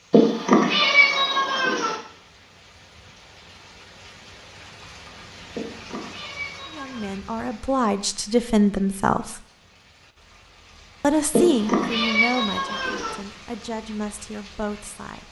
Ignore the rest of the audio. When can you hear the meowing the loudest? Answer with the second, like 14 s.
1 s.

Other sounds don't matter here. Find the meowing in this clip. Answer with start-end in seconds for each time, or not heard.
0.1-1.9, 5.5-7.1, 11.3-13.2.